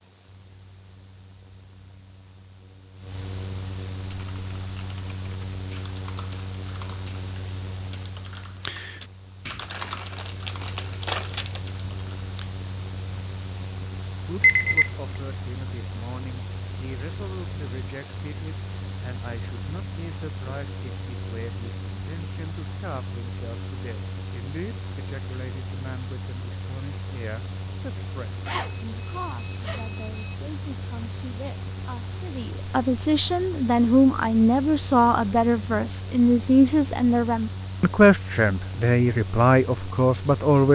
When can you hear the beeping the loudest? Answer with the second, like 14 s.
15 s.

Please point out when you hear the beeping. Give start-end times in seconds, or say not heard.
14.4-15.2, 28.4-30.4.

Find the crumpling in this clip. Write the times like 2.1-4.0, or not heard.
9.6-11.6.